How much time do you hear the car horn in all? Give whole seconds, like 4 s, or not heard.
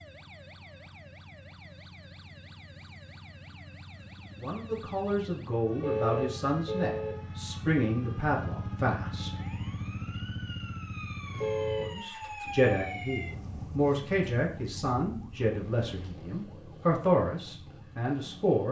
2 s.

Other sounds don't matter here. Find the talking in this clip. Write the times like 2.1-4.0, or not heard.
4.4-9.3, 11.8-18.6.